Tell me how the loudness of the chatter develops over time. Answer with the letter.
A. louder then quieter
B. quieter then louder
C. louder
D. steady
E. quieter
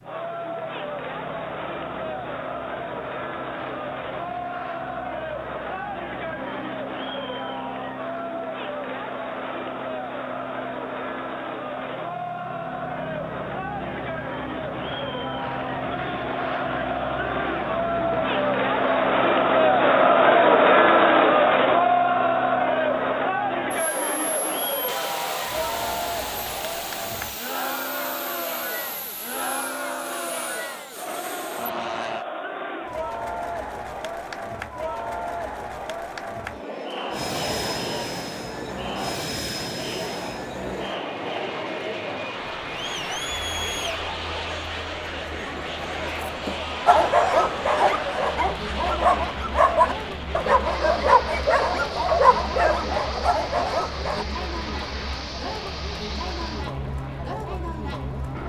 A.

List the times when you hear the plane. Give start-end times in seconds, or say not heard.
0.0-32.2, 37.0-58.4.